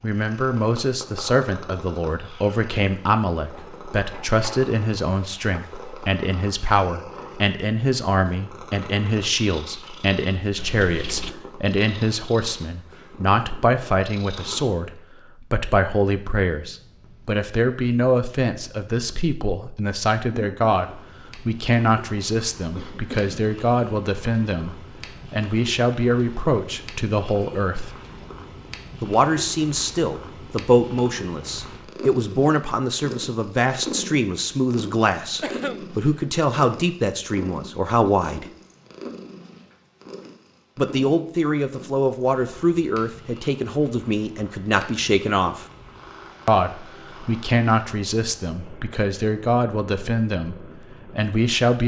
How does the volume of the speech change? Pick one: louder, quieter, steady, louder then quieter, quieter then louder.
steady.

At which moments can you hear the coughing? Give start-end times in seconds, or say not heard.
10.6-11.4, 22.8-23.6, 35.4-36.3.